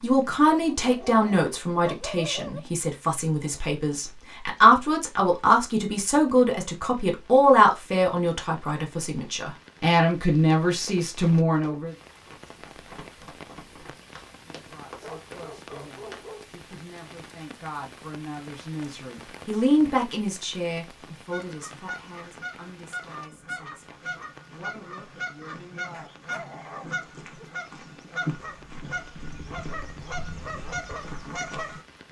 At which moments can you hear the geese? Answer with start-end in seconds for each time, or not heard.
21.2-31.9.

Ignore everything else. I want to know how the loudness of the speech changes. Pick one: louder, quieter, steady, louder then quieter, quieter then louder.
quieter.